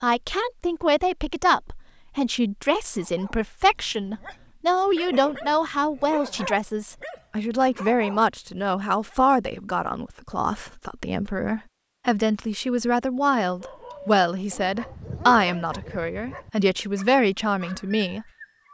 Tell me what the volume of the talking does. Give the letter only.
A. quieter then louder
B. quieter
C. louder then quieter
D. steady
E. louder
D.